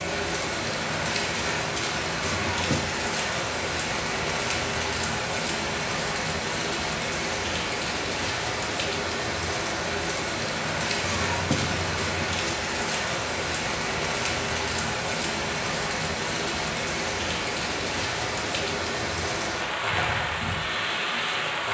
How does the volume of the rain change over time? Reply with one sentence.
The volume of the rain stays about the same.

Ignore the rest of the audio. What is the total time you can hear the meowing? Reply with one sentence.
You can hear the meowing for 2 seconds altogether.